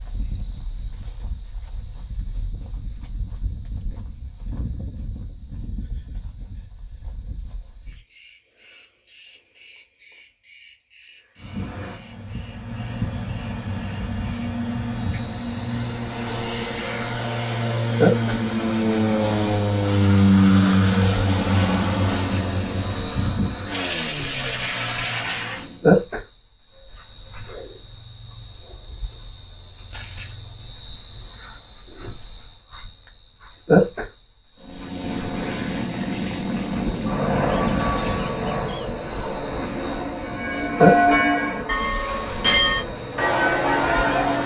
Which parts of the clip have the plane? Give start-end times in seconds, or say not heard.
11.3-25.9, 34.6-44.4.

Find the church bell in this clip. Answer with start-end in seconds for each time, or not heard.
40.2-44.4.